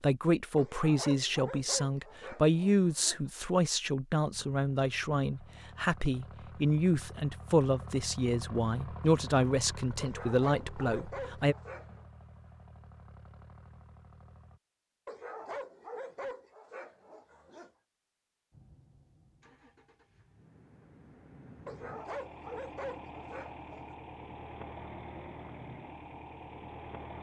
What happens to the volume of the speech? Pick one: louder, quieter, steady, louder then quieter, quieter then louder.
steady.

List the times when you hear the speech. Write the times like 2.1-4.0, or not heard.
0.0-11.6.